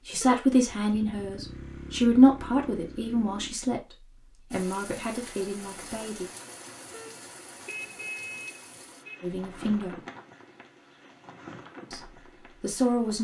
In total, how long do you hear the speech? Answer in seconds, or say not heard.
8 s.